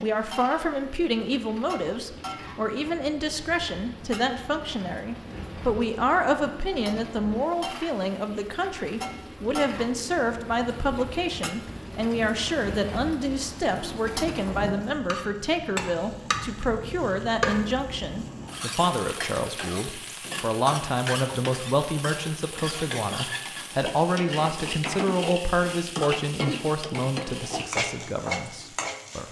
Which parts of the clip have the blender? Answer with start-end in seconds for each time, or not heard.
not heard.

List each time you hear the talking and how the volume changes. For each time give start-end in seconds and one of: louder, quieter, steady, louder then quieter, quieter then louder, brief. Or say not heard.
0.0-29.2 steady.